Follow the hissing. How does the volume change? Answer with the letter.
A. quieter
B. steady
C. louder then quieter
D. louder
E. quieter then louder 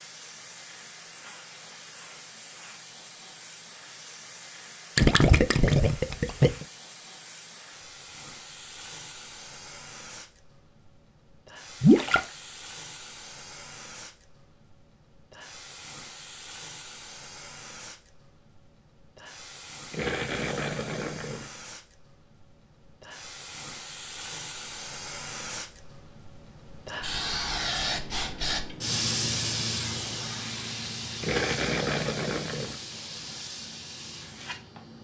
D.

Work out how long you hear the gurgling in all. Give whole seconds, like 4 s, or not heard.
5 s.